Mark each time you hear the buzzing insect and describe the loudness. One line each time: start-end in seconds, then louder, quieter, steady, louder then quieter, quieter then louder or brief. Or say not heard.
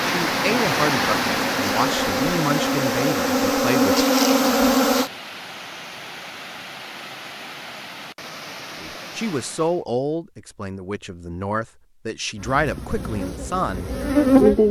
0.0-5.1 louder
12.3-14.6 brief.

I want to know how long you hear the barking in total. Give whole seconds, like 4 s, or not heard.
not heard.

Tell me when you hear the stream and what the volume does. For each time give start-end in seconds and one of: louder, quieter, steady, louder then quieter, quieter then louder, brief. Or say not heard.
0.0-9.8 quieter.